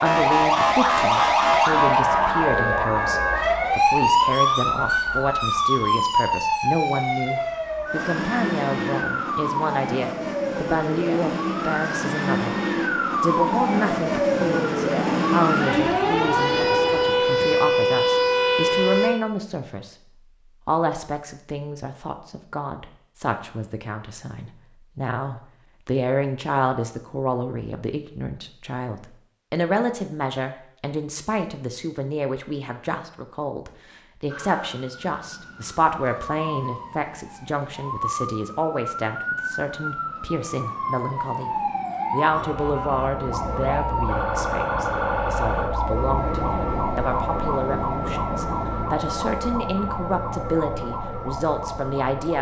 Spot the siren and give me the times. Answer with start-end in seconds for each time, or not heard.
0.0-19.1, 34.2-52.3.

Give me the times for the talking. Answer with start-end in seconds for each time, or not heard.
0.0-12.6, 13.2-19.9, 20.6-52.3.